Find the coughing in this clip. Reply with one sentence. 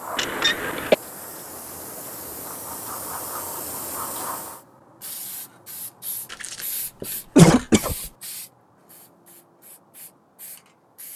The coughing can be heard from 0.1 to 0.9 s and from 6.3 to 8.0 s.